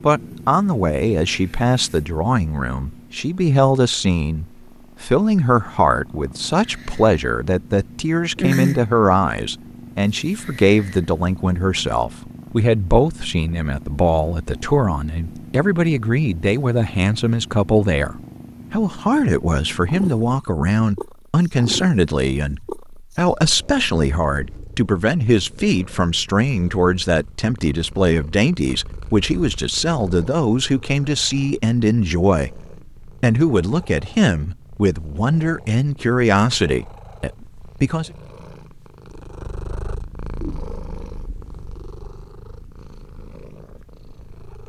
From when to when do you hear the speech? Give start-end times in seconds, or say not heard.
0.0-32.5, 33.2-38.1.